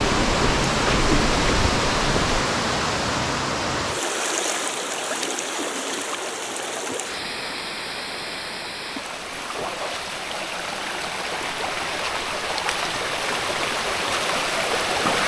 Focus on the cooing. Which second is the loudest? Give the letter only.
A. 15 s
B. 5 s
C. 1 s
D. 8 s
C.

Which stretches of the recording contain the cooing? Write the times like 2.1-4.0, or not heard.
0.0-2.4.